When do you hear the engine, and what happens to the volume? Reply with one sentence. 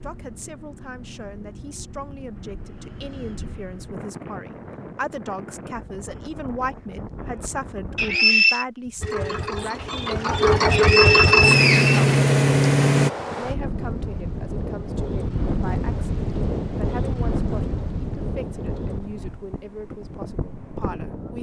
The engine can be heard from 9.0 to 13.1 s, getting louder.